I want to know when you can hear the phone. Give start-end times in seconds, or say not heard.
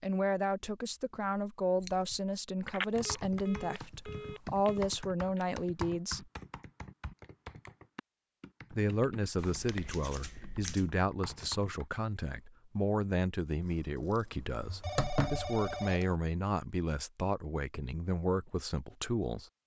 2.6-4.8, 14.6-16.1.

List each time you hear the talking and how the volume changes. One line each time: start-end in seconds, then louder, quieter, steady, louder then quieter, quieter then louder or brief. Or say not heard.
0.0-6.2 steady
8.7-19.4 steady.